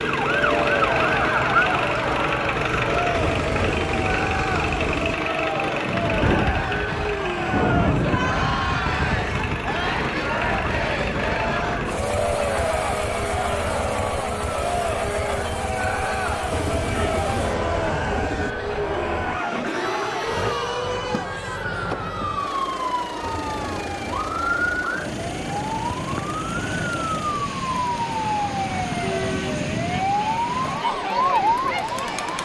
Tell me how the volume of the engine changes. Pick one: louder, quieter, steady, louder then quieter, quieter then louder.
quieter.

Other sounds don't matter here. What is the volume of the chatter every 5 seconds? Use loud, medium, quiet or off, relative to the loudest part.
loud, loud, loud, loud, medium, medium, loud.